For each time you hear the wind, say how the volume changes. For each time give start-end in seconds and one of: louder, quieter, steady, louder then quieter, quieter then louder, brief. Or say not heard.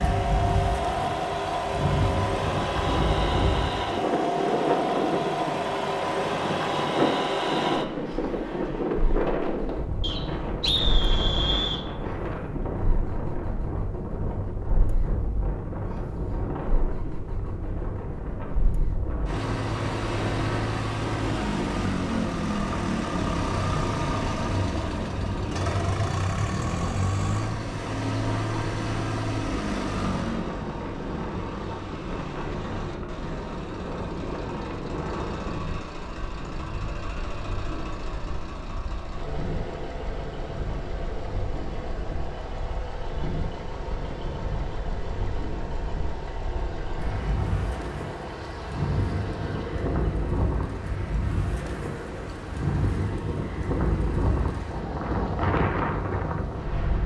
0.0-57.0 quieter then louder.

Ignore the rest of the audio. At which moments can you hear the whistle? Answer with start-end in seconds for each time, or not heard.
10.0-11.8.